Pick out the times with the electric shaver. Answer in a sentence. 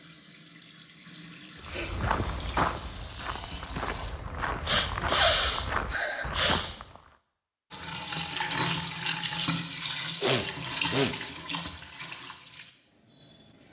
You can't hear the electric shaver here.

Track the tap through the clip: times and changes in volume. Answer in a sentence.
The tap can be heard from 0.0 to 4.1 s, getting louder; and from 7.7 to 13.6 s, getting quieter.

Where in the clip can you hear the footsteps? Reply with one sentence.
The footsteps can be heard from 1.6 to 7.2 s.